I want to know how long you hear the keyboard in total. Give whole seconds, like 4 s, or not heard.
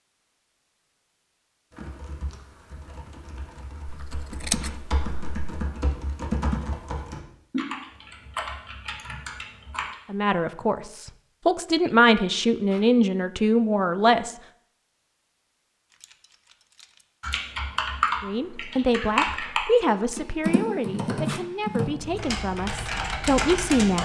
15 s.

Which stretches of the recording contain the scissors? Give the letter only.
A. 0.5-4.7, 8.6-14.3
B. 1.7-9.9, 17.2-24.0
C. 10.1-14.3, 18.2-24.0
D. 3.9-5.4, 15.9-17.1
D.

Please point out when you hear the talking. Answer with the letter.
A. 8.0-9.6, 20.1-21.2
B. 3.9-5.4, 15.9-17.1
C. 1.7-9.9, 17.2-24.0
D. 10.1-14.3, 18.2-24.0
D.